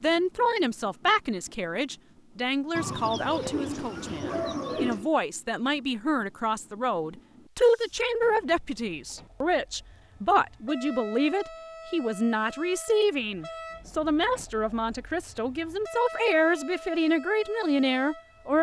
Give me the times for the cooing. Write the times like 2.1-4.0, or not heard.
2.8-5.1.